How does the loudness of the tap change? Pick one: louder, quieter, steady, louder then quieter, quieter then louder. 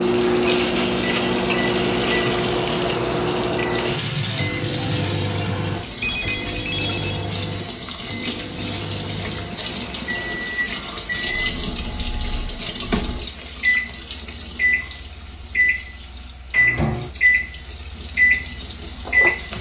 quieter.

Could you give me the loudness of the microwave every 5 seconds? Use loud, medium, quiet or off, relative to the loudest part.
loud, medium, medium, loud.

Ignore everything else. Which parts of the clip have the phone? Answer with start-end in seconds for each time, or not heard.
6.0-7.3.